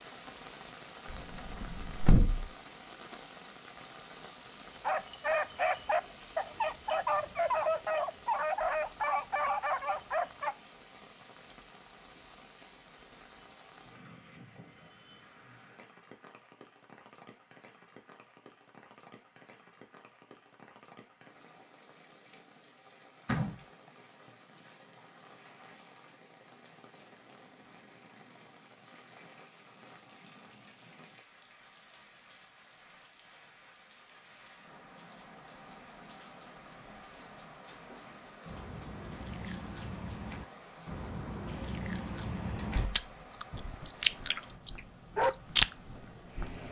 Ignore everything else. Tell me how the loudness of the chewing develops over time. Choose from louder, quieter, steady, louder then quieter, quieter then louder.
louder.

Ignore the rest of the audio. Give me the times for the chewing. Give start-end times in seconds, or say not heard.
38.5-45.8.